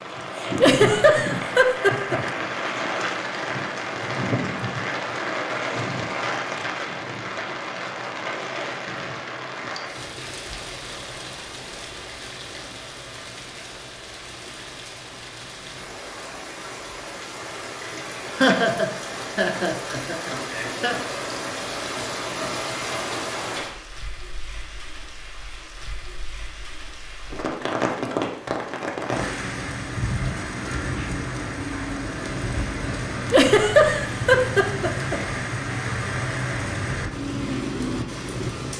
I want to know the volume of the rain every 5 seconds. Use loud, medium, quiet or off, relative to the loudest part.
loud, loud, medium, medium, loud, loud, loud, loud.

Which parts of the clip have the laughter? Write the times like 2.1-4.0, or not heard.
0.6-2.2, 18.4-20.9, 33.3-35.2.